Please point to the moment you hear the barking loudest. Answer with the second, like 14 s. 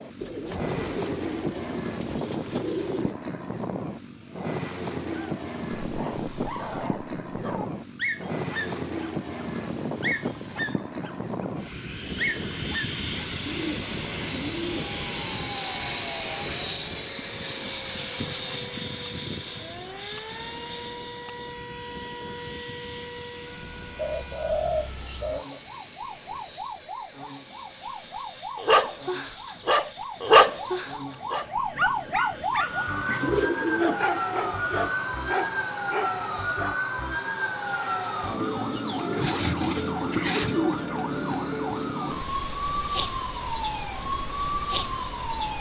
30 s.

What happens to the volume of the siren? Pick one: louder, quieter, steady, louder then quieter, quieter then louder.
louder.